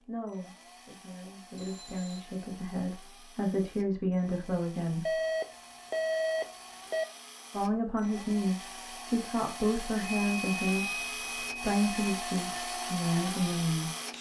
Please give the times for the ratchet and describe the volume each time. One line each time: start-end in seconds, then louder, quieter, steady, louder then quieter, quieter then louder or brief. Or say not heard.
not heard.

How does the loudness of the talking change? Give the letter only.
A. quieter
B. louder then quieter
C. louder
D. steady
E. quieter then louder
C.